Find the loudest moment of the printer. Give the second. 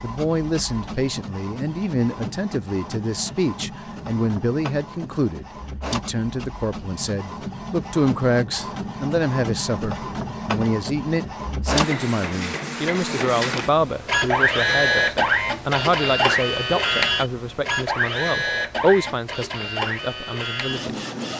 15 s.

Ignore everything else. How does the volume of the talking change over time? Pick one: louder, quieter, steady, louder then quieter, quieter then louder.
steady.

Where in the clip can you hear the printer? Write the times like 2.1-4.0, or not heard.
0.0-21.3.